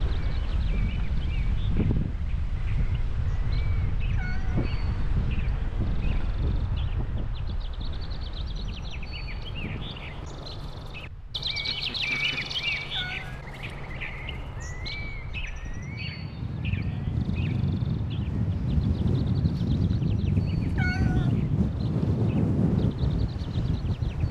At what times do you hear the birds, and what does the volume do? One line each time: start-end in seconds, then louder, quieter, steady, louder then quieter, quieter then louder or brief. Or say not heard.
0.0-24.2 louder then quieter.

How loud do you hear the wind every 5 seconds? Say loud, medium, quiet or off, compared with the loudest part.
medium, medium, quiet, loud, loud.